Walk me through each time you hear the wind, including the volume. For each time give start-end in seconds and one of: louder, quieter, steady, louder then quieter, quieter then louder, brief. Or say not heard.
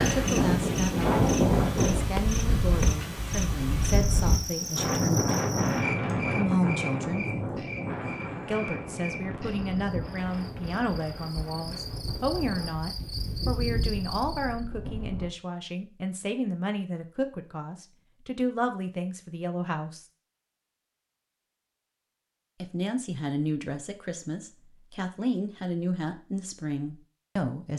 0.0-15.3 quieter.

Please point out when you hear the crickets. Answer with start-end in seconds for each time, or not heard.
0.0-14.6.